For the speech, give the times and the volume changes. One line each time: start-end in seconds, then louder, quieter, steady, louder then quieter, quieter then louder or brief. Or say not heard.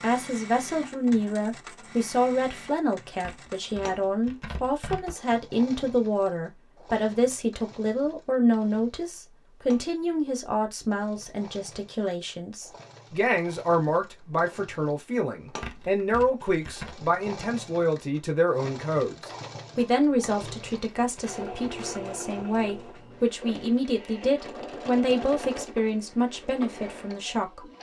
0.0-27.7 steady.